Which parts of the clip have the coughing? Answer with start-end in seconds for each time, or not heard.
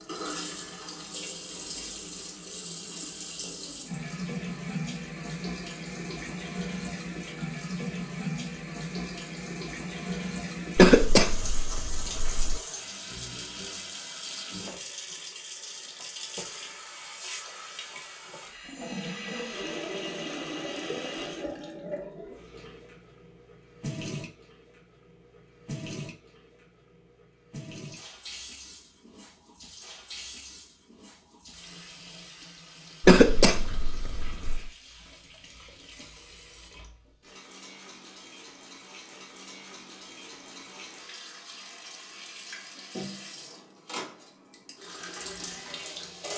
10.8-12.6, 33.0-34.7.